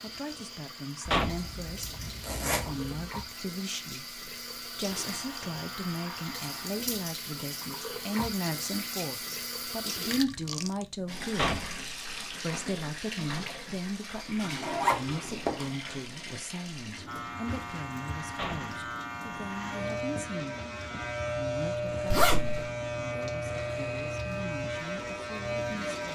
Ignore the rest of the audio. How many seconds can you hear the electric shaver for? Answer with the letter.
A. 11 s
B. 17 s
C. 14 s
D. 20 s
A.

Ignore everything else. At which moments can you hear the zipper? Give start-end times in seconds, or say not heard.
1.3-3.0, 14.6-15.8, 22.1-22.6.